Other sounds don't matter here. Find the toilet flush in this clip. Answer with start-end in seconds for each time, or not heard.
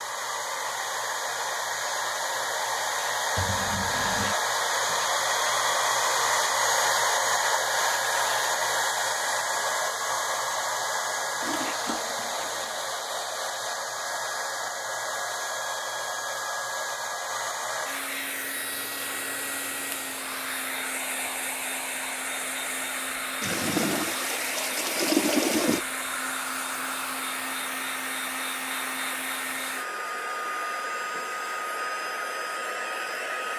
3.4-4.3, 11.4-12.9, 23.4-25.8.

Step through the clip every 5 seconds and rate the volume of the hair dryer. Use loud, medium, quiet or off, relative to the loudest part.
loud, loud, medium, medium, medium, medium, medium.